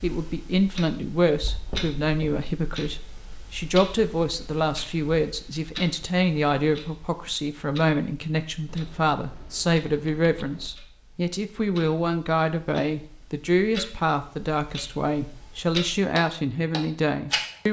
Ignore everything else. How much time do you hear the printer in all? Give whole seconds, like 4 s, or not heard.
not heard.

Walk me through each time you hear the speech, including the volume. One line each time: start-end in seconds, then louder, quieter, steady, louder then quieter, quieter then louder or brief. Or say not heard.
0.0-17.6 steady.